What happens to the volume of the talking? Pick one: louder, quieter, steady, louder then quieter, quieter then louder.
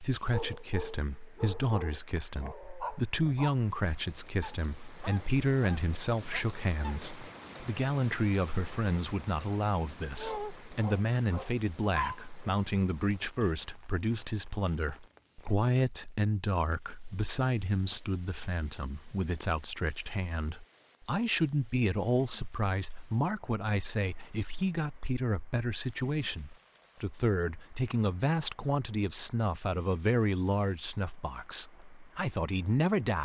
steady.